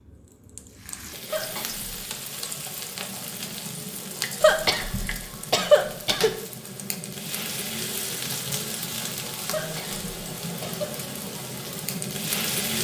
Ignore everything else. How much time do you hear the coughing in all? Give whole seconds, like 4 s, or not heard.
4 s.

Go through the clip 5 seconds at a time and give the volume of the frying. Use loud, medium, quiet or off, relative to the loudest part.
medium, loud, loud.